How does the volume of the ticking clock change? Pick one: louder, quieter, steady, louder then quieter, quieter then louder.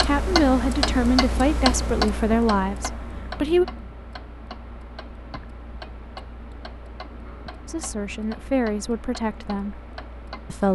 quieter.